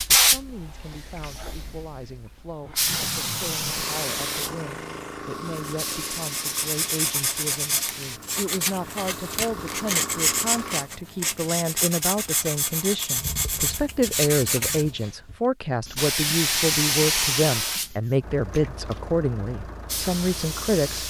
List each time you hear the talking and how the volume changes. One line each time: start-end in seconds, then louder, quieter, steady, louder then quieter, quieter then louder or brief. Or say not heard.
0.1-21.0 louder.